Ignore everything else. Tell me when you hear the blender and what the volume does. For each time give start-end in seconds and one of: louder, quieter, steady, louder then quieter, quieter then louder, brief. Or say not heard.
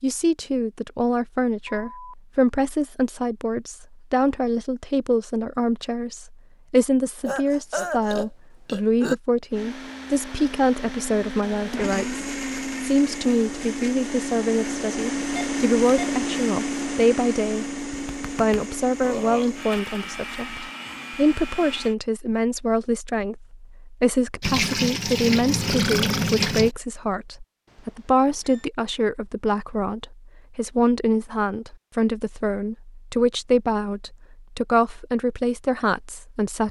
9.5-21.9 louder then quieter.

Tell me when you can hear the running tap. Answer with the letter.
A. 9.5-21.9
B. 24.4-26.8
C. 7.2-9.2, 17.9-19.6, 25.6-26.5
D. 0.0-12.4
B.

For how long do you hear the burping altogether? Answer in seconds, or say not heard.
5 s.